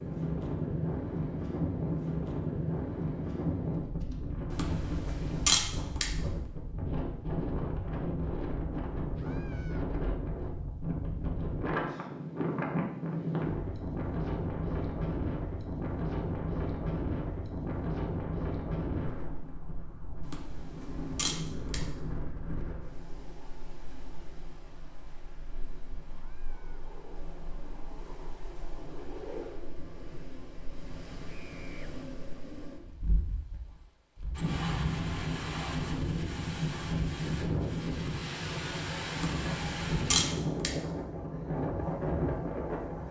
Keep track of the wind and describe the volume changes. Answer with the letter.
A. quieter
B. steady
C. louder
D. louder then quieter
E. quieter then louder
E.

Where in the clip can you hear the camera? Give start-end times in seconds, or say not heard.
4.5-6.1, 20.2-21.9, 39.2-40.8.